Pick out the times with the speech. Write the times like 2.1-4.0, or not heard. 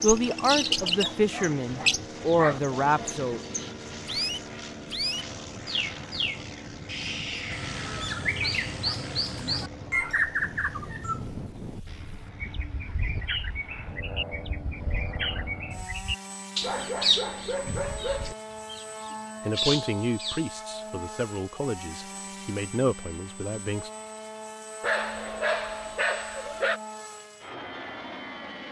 0.0-3.4, 19.4-23.9.